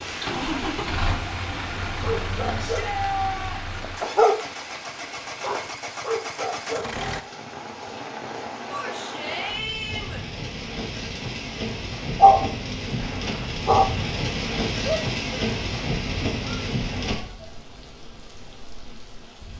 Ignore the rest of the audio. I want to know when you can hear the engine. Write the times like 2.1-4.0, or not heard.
0.0-7.2.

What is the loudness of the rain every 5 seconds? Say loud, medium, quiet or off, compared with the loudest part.
medium, medium, loud, loud.